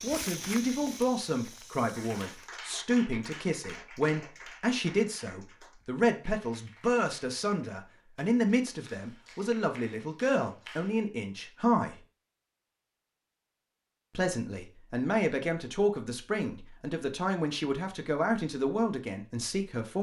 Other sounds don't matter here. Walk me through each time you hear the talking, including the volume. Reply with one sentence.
You can hear the talking from 0.0 to 11.9 s, at a steady volume; and from 14.2 to 19.9 s, at a steady volume.